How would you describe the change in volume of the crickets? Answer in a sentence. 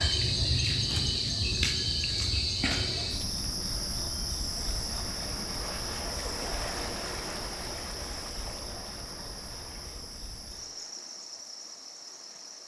The volume of the crickets goes down.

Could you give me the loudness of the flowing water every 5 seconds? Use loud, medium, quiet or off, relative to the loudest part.
medium, loud, quiet.